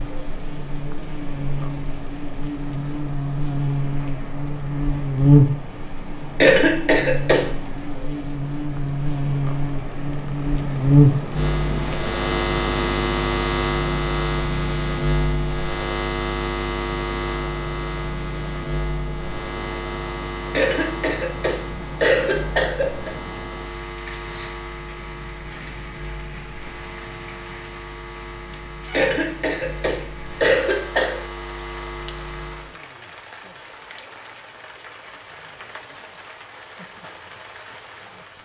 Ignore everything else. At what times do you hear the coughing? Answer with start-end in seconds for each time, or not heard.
6.4-7.5, 20.5-23.1, 28.9-31.2.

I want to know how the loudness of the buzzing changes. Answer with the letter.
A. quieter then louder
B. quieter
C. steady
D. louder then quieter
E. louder
B.